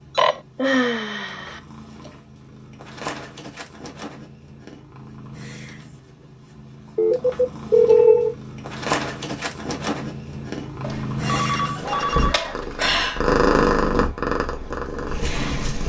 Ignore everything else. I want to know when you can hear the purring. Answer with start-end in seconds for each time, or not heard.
0.0-15.8.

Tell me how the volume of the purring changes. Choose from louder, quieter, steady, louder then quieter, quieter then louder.
louder.